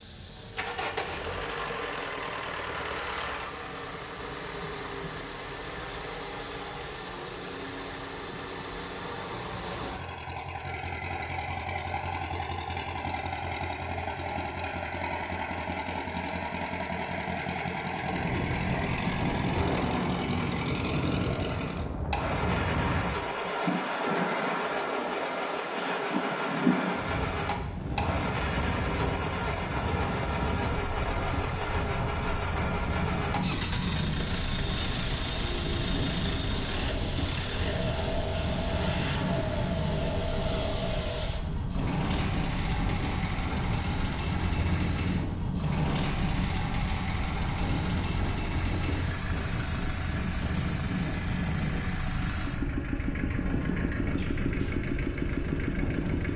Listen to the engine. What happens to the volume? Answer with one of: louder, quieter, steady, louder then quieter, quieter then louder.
steady.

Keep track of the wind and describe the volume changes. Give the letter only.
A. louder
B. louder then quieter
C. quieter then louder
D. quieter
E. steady
E.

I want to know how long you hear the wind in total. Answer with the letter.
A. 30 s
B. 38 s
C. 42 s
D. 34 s
B.